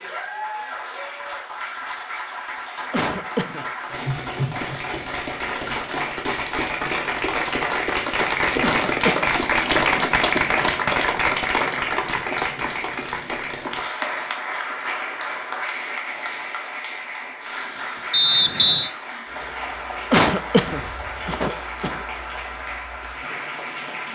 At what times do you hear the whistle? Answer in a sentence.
You can hear the whistle from 18.1 to 18.9 s.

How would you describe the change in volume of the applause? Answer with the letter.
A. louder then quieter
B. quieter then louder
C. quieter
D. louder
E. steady
A.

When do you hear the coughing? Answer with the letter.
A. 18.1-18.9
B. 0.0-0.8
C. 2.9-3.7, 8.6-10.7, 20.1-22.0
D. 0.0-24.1
C.